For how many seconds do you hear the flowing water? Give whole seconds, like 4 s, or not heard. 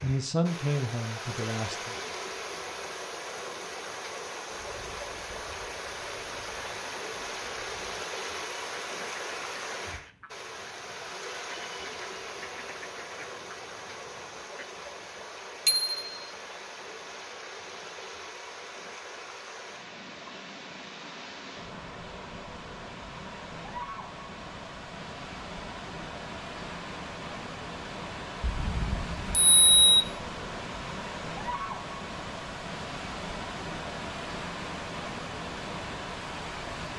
37 s.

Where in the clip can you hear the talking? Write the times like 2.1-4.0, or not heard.
0.0-1.9.